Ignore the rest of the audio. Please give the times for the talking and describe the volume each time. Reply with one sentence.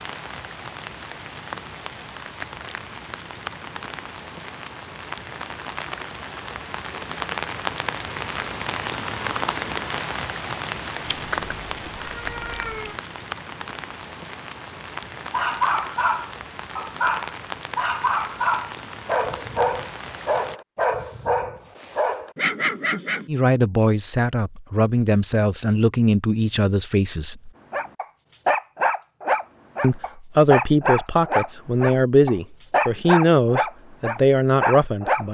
The talking can be heard from 23.2 to 27.5 s, at a steady volume; and from 29.8 to 35.2 s, at a steady volume.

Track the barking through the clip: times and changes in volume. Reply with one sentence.
You can hear the barking from 15.3 to 23.2 s, at a steady volume; and from 27.7 to 35.2 s, at a steady volume.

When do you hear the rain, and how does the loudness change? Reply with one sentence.
You can hear the rain from 0.0 to 20.6 s, getting louder then quieter.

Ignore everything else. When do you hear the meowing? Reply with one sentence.
The meowing can be heard from 11.1 to 12.9 s.